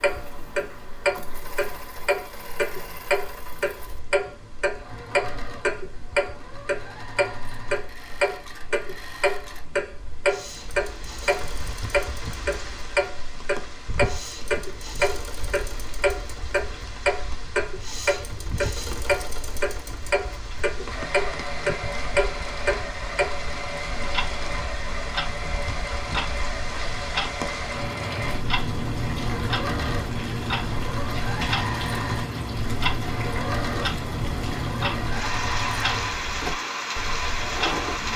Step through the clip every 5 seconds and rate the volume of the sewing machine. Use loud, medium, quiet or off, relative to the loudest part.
medium, medium, medium, medium, loud, loud, loud, loud.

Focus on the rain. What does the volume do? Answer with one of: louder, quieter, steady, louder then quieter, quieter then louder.
louder.